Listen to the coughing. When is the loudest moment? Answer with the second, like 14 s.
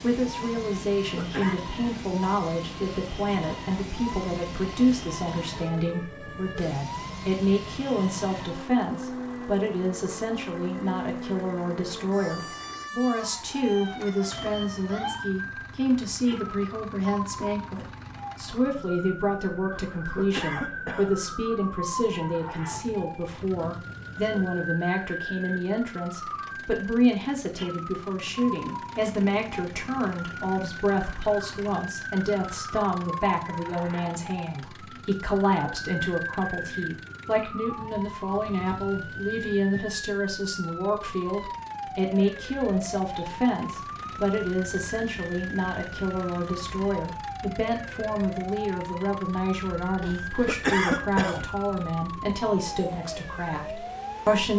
51 s.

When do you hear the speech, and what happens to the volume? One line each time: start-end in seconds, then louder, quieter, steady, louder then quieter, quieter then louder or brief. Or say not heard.
0.0-54.5 steady.